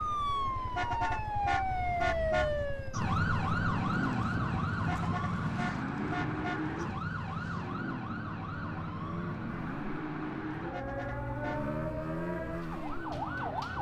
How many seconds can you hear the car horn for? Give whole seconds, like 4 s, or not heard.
5 s.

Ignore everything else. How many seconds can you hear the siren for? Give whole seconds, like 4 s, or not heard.
14 s.